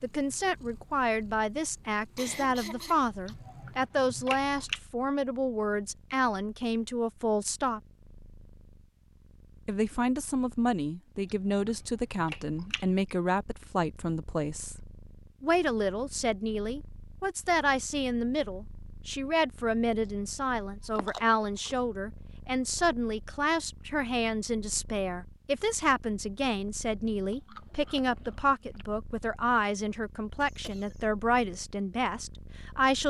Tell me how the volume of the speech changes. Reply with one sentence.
The volume of the speech stays about the same.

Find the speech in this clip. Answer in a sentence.
You can hear the speech from 0.0 to 7.8 s, from 9.7 to 14.8 s and from 15.4 to 33.0 s.